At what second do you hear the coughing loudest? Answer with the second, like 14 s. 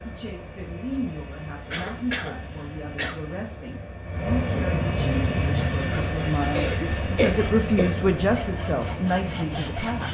7 s.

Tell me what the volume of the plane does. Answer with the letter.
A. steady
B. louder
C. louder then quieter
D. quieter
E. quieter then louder
C.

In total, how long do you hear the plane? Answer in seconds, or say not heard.
10 s.